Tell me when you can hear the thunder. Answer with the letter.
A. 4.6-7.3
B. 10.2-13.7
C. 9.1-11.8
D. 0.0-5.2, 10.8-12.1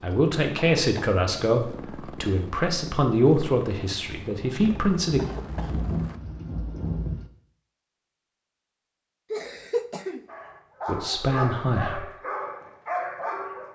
A.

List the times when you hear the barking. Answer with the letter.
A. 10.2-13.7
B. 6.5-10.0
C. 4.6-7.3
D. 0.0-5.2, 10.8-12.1
A.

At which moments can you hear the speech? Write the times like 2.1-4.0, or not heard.
0.0-5.2, 10.8-12.1.